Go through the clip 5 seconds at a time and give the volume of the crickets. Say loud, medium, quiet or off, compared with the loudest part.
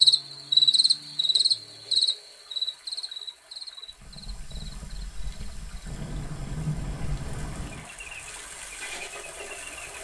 loud, quiet.